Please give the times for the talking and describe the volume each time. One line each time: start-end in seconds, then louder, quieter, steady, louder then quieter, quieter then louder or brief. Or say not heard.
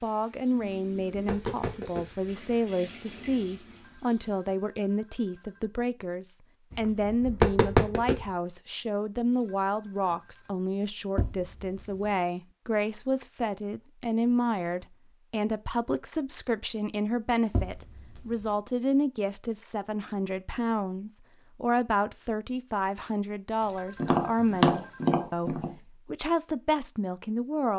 0.0-27.7 steady.